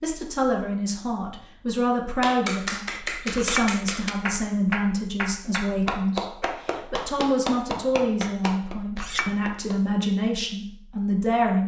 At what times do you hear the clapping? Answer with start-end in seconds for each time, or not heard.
2.2-9.8.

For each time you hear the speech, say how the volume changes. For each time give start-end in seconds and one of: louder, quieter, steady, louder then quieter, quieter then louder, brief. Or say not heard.
0.0-11.6 steady.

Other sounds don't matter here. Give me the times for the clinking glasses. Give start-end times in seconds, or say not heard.
3.0-3.8, 8.8-9.3.